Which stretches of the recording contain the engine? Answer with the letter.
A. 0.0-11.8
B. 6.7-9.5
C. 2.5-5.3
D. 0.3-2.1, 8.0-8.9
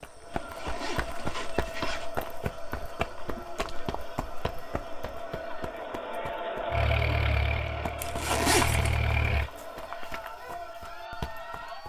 B.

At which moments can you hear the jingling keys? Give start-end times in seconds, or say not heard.
not heard.